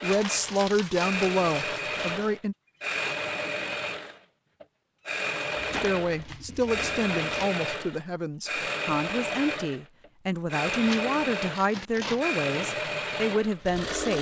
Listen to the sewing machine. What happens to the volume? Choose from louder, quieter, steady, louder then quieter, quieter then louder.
steady.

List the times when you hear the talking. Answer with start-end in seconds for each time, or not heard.
0.0-2.5, 5.7-14.1.